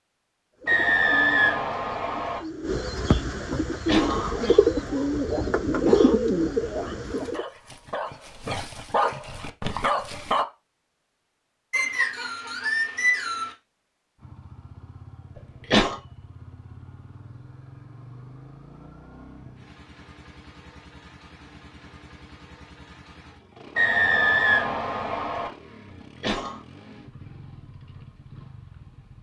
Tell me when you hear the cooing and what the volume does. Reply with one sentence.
You can hear the cooing from 0.6 to 7.5 s, getting louder.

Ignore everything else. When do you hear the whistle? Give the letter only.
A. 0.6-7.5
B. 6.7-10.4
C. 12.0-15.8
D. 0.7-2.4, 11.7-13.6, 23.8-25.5
D.